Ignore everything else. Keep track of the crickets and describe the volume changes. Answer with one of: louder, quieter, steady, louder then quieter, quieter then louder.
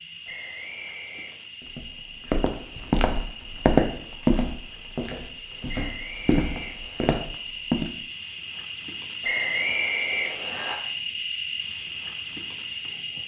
louder.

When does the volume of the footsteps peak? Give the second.
4 s.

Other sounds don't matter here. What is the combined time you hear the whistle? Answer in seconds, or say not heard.
4 s.